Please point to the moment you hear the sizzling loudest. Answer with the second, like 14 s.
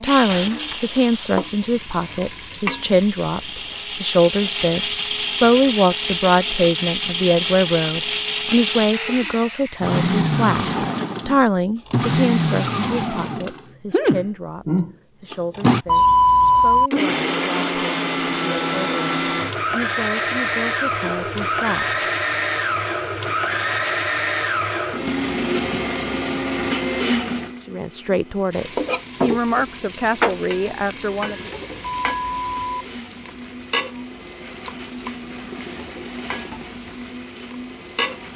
30 s.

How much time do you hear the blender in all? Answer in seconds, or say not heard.
38 s.